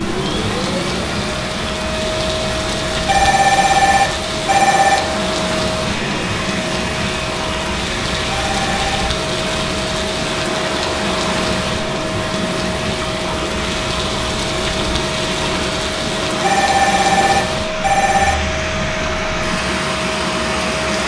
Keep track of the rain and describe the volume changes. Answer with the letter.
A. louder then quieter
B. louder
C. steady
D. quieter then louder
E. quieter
C.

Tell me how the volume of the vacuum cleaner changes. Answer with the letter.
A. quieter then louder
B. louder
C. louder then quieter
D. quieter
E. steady
E.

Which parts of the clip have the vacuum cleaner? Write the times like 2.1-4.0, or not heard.
0.0-21.0.